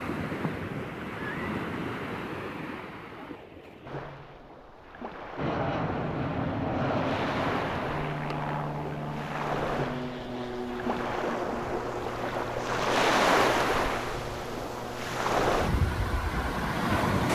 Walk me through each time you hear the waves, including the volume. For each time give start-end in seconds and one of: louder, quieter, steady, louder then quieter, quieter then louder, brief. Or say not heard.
0.0-17.2 quieter then louder.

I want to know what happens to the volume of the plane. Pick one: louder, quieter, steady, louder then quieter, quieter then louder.
quieter.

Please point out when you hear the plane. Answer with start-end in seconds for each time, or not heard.
5.3-16.9.